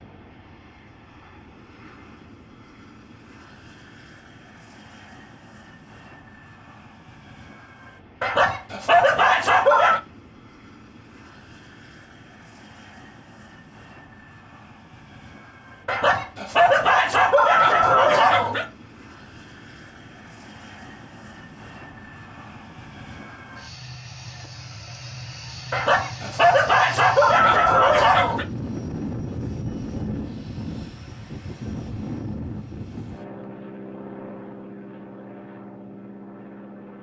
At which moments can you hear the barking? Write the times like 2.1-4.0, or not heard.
8.2-10.0, 15.8-18.7, 25.7-28.4.